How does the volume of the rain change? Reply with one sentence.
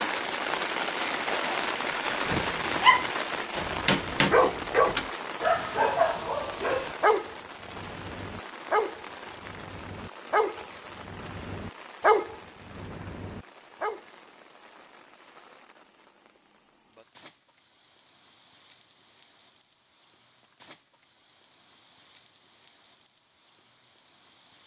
The loudness of the rain goes down.